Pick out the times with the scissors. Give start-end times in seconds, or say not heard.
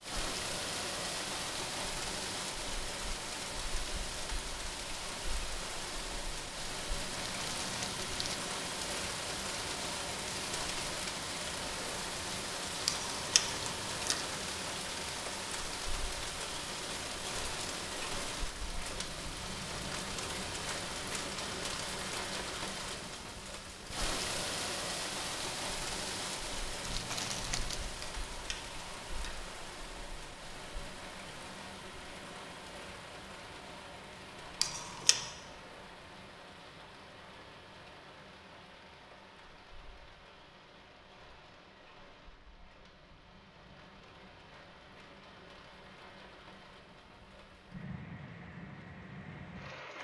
12.8-14.2, 28.0-29.4, 34.6-35.2.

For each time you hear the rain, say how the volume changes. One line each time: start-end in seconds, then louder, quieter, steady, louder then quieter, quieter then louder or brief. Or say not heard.
0.0-49.9 quieter.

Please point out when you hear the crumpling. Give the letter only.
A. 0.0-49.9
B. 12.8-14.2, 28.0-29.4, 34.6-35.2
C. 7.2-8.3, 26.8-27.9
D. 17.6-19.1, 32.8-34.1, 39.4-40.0
C.